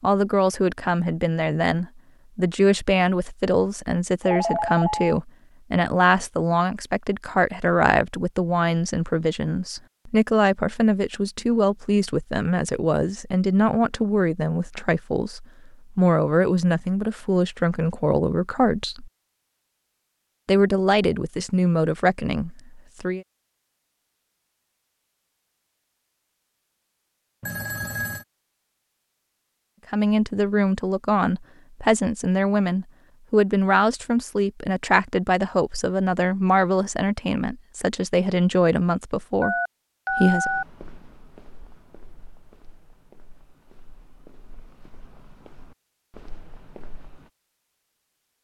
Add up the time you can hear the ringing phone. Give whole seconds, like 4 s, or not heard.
3 s.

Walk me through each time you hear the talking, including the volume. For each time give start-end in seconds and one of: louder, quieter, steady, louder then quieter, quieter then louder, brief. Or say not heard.
0.0-19.1 steady
20.4-23.2 brief
29.9-40.5 steady.